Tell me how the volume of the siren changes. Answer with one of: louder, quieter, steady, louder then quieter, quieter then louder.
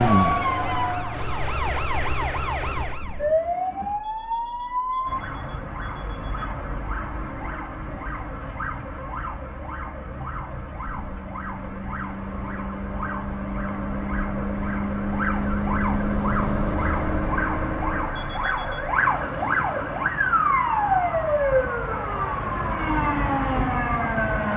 quieter then louder.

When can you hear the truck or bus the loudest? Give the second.
16 s.